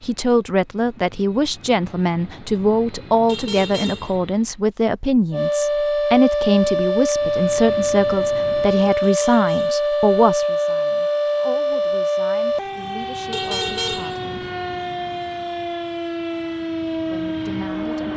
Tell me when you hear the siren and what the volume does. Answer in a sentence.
The siren can be heard from 5.3 to 18.1 s, getting quieter.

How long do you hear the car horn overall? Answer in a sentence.
You can hear the car horn for 3 seconds altogether.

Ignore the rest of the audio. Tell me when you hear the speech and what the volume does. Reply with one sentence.
The speech can be heard from 0.0 to 14.2 s, getting quieter; and briefly from 17.1 to 18.1 s.